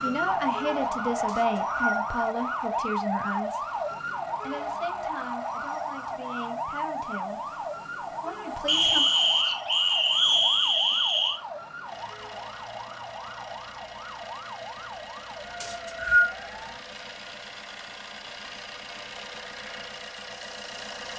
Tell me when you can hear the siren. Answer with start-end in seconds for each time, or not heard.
0.0-16.8.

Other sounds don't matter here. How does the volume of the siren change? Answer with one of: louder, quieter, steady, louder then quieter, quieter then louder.
quieter.